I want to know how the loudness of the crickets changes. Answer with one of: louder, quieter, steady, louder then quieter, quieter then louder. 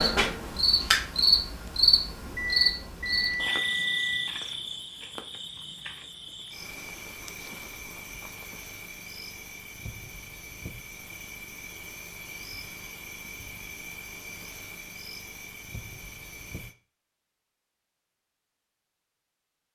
quieter.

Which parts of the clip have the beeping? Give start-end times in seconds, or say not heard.
2.4-4.3.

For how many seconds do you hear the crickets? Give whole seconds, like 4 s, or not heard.
17 s.